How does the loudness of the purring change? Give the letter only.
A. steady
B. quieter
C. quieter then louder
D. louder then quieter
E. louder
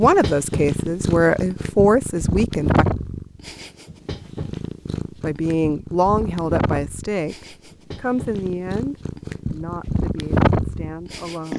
C.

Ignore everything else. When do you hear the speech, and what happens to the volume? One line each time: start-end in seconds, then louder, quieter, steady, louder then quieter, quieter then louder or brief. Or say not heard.
0.0-2.9 brief
5.2-11.5 quieter.